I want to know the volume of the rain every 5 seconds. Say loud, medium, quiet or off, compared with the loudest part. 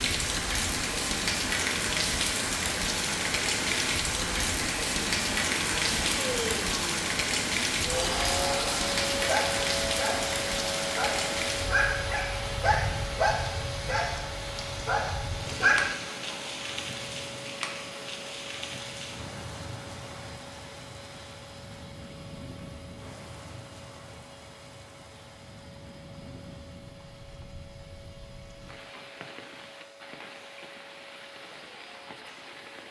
loud, loud, medium, medium, quiet, quiet, quiet.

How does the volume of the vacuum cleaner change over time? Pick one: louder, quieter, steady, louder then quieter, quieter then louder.
quieter.